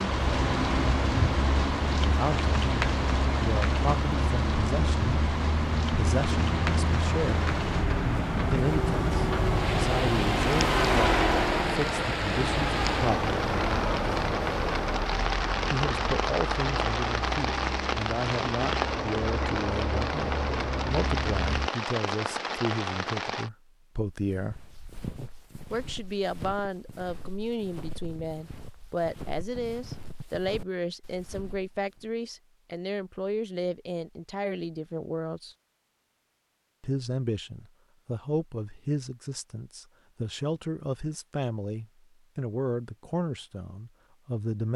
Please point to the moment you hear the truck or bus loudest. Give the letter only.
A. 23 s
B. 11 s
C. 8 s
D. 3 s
B.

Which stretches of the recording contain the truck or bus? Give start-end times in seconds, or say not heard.
0.0-21.7.